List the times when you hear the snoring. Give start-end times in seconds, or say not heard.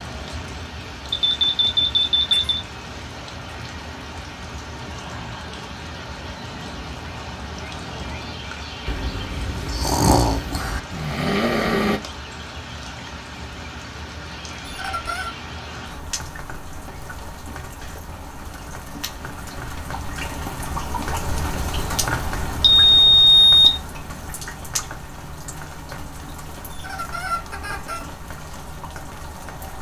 8.8-12.0.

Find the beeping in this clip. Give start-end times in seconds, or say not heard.
1.1-2.6, 22.6-23.7.